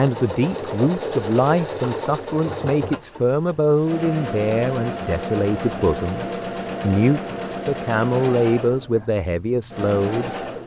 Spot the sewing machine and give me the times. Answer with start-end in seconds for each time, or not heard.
0.0-10.6.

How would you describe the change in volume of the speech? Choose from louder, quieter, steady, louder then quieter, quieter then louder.
steady.